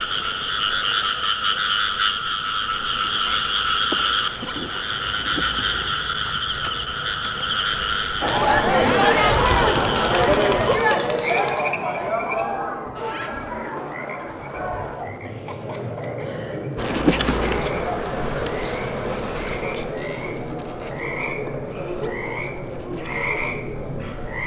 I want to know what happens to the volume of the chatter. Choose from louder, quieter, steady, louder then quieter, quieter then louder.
quieter.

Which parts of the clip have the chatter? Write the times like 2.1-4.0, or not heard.
8.2-24.4.